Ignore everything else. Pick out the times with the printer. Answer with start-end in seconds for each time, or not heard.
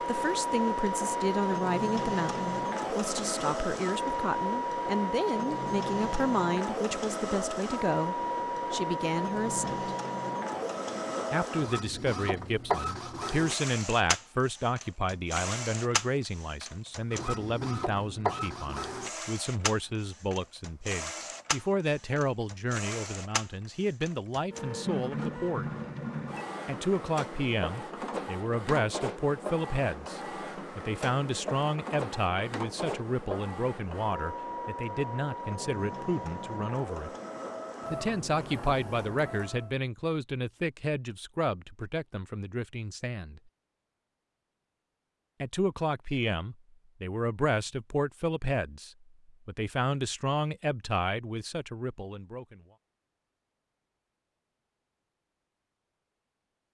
0.0-39.8.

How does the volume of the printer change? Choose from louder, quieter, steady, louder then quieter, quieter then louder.
quieter.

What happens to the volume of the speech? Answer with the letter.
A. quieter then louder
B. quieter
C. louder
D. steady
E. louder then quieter
D.